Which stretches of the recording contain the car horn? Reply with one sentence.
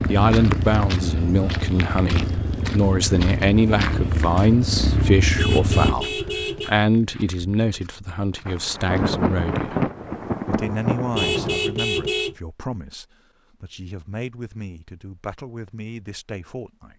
You can hear the car horn from 5.3 to 6.8 s and from 11.1 to 12.3 s.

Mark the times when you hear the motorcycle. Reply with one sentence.
You can hear the motorcycle from 0.0 to 6.0 s.